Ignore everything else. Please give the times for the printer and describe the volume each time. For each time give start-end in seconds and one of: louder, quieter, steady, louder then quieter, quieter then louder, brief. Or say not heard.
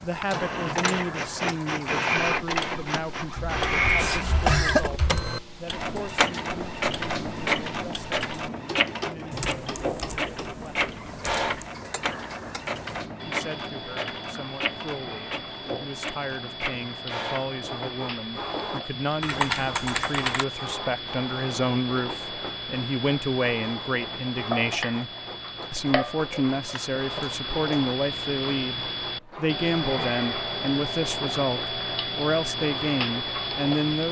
0.0-34.0 quieter.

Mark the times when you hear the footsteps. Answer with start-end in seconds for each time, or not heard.
not heard.